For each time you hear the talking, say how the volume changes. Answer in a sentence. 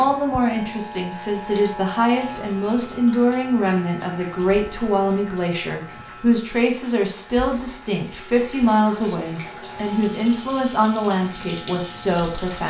You can hear the talking from 0.0 to 12.6 s, at a steady volume.